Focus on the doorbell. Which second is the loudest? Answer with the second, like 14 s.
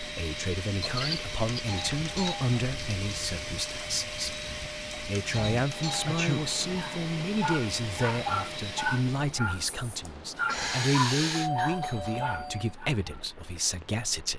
12 s.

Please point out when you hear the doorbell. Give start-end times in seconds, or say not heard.
1.5-2.5, 5.2-6.2, 11.3-12.8.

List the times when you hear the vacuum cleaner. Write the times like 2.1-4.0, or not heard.
0.0-9.4.